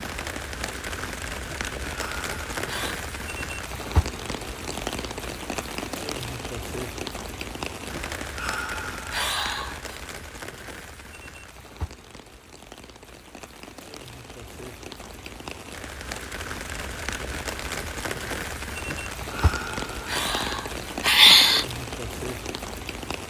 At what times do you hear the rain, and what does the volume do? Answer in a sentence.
The rain can be heard from 0.0 to 23.2 s, getting quieter then louder.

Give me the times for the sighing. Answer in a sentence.
You can hear the sighing from 1.4 to 3.0 s, from 7.9 to 10.0 s and from 18.9 to 21.6 s.